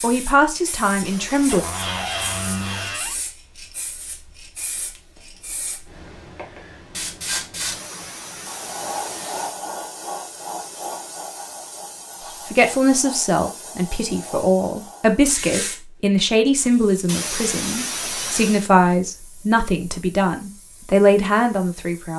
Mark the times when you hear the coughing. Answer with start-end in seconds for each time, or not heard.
1.0-3.0, 7.7-9.6, 17.1-18.7.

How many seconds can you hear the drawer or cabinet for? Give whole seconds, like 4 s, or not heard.
2 s.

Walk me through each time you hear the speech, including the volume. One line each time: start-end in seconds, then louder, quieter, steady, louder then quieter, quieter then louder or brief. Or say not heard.
0.0-1.6 brief
12.4-22.1 steady.